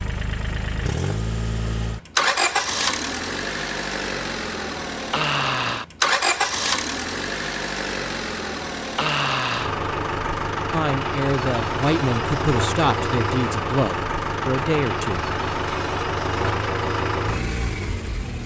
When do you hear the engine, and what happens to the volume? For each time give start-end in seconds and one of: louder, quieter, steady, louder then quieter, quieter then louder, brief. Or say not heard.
0.0-18.4 steady.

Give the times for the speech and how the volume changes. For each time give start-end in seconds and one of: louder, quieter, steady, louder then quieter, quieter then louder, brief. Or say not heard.
10.7-15.2 steady.